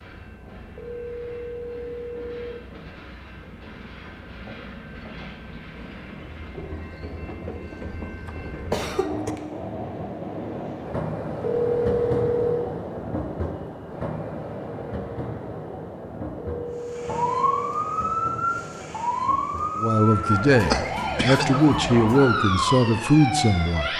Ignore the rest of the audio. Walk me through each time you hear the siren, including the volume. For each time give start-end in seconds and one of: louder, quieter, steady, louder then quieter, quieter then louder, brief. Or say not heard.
16.9-23.9 steady.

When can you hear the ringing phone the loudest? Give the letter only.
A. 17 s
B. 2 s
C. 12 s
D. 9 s
C.